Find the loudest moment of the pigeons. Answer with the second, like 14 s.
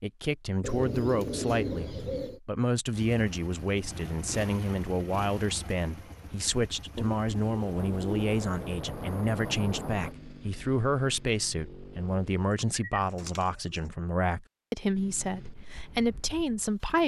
2 s.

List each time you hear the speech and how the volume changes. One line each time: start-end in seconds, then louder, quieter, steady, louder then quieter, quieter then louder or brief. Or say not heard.
0.0-17.0 steady.